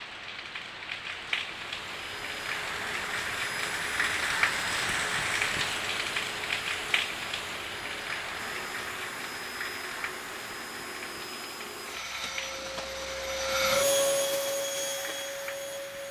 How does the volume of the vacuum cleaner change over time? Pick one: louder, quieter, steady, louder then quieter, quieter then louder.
louder.